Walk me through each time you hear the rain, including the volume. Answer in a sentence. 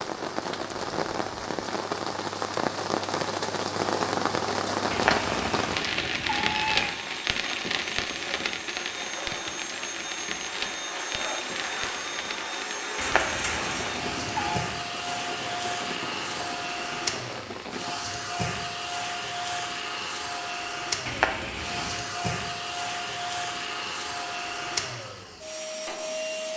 You can hear the rain from 0.0 to 17.9 s, getting quieter.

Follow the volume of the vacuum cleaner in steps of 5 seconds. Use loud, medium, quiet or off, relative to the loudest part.
off, medium, loud, loud, loud, loud.